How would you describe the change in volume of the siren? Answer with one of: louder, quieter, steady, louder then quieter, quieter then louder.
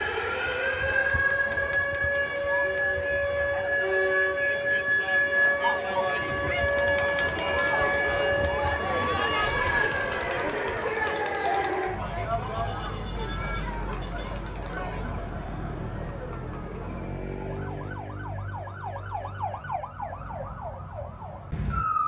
quieter.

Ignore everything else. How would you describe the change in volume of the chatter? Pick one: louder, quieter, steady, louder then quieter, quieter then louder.
louder then quieter.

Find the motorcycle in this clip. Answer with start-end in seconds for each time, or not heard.
not heard.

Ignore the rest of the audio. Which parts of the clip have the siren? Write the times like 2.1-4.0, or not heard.
0.0-22.0.